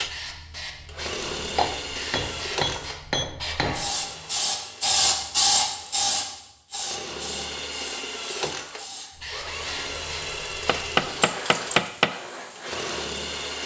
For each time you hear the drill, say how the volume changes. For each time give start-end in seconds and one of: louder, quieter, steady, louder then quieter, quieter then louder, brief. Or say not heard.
0.0-13.6 quieter then louder.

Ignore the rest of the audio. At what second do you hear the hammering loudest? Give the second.
12 s.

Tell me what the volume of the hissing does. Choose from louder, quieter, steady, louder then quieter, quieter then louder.
louder then quieter.